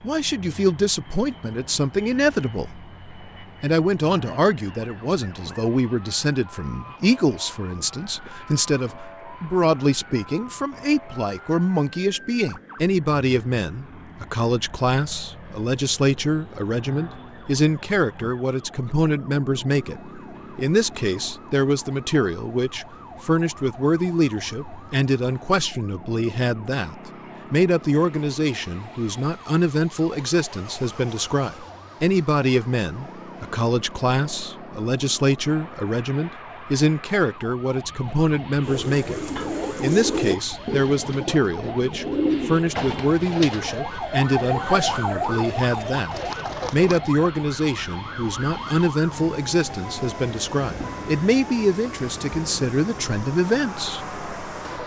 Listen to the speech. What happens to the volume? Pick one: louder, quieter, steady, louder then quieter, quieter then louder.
steady.